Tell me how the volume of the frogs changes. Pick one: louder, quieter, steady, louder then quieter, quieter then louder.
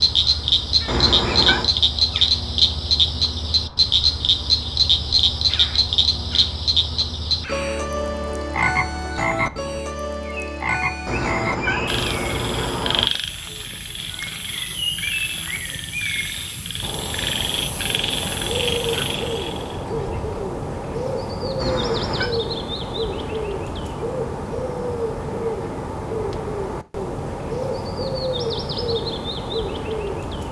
quieter.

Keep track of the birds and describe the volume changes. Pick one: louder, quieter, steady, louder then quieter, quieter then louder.
louder.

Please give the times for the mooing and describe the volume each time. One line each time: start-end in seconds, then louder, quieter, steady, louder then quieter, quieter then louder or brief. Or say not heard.
not heard.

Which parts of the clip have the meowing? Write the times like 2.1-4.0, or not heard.
0.8-1.7, 11.1-13.1, 21.6-22.3.